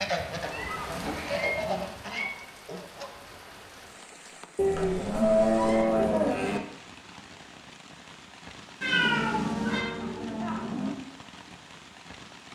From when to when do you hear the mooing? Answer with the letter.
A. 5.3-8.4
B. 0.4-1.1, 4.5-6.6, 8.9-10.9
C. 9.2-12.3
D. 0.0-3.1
B.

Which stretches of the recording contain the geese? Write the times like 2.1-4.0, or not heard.
0.0-3.1.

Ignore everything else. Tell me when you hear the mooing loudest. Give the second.
5 s.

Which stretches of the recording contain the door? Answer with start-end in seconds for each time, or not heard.
not heard.